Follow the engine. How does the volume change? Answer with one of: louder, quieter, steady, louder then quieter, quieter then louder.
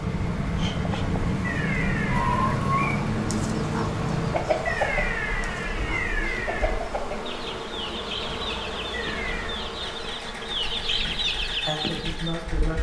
quieter.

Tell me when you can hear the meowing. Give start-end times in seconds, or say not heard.
1.4-2.5, 4.7-6.8, 8.9-9.6.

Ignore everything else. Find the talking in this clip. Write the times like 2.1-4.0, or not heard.
11.7-12.7.